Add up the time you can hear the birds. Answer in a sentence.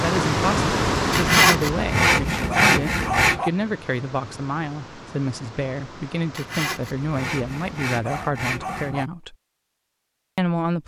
The birds can't be heard in this clip.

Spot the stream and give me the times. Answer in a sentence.
You can hear the stream from 0.0 to 8.0 s.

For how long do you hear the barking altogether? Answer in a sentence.
You can hear the barking for 2 seconds altogether.